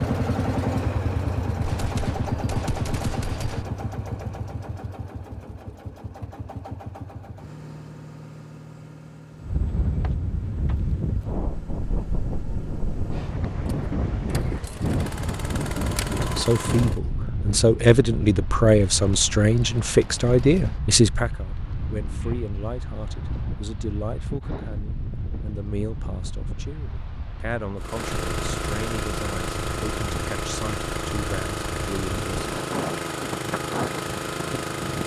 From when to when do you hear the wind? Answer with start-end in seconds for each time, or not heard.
9.4-35.0.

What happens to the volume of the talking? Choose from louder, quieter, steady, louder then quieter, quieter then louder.
quieter.